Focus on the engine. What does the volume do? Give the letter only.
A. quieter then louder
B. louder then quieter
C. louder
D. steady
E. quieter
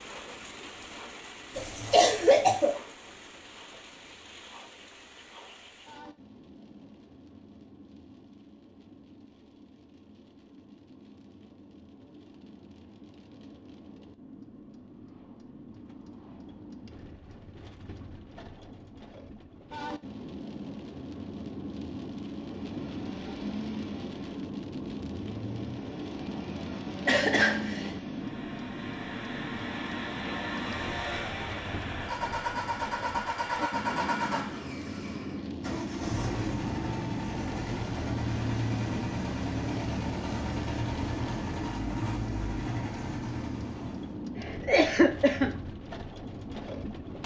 C.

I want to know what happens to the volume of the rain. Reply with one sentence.
The loudness of the rain goes up.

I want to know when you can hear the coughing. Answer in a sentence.
You can hear the coughing from 1.6 to 2.8 s, from 27.1 to 27.9 s and from 44.4 to 45.5 s.